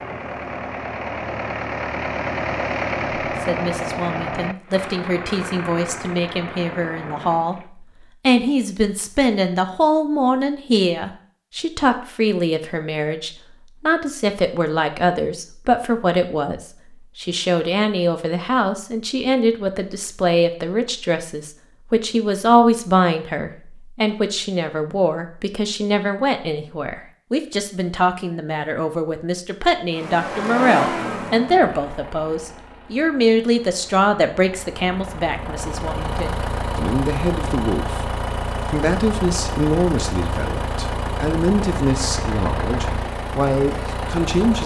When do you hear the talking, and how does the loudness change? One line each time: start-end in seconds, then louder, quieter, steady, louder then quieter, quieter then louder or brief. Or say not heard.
3.4-44.6 steady.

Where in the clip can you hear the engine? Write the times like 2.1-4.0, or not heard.
0.0-7.7, 29.9-44.6.